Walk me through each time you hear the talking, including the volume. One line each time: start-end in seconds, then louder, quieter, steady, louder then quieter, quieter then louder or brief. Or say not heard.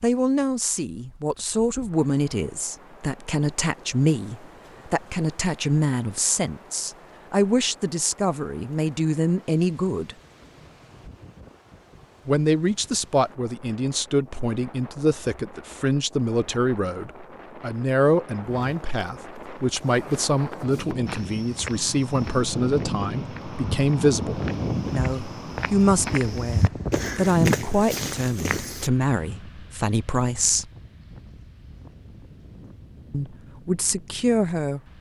0.0-10.2 steady
12.2-30.7 steady
33.1-34.8 brief.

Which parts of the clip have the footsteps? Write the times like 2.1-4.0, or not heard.
18.4-28.9.